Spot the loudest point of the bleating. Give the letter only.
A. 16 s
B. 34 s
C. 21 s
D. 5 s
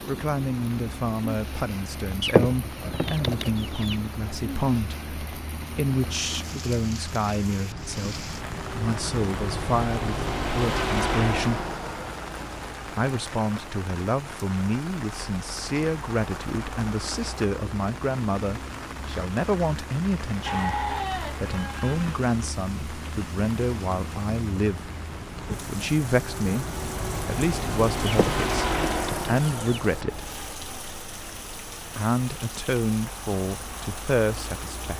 C.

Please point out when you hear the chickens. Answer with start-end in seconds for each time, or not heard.
2.2-4.0, 28.1-29.8.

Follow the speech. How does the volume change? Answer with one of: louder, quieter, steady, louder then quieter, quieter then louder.
steady.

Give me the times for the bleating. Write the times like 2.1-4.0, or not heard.
20.4-22.2.